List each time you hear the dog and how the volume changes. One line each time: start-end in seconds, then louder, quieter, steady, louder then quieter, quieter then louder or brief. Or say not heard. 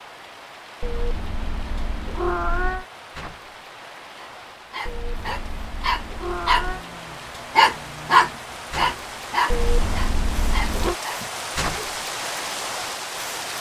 4.2-11.9 louder then quieter.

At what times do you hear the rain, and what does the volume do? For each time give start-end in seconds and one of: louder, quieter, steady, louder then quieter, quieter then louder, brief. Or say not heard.
0.0-13.5 louder.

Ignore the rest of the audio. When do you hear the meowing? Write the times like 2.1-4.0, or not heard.
0.8-2.9, 4.8-6.8, 9.5-10.9.